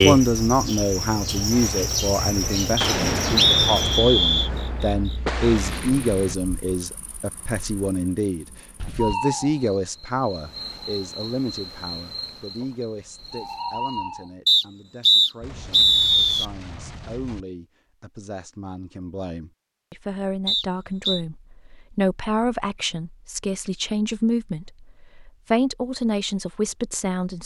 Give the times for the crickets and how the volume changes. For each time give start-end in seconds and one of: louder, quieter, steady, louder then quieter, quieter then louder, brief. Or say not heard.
0.0-14.3 quieter then louder.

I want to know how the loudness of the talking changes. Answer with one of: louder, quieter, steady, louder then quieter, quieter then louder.
quieter then louder.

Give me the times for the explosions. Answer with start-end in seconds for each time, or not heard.
2.8-6.3, 15.4-17.4.